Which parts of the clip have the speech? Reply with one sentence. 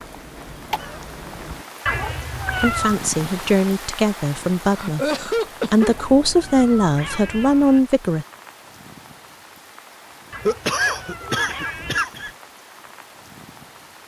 You can hear the speech from 2.6 to 5.1 s and from 5.7 to 8.2 s.